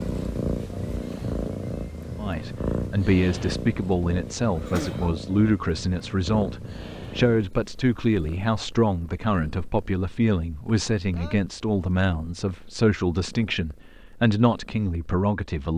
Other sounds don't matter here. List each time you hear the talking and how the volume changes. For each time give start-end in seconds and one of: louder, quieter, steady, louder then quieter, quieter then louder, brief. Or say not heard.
2.1-15.7 steady.